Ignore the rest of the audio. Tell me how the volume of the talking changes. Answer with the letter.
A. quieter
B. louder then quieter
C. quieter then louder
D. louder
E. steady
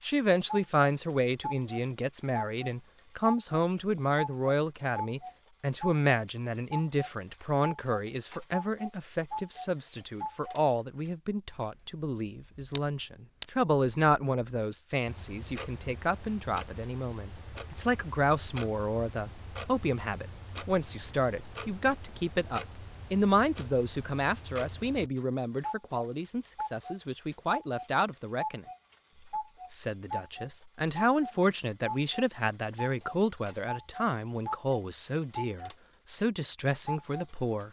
E.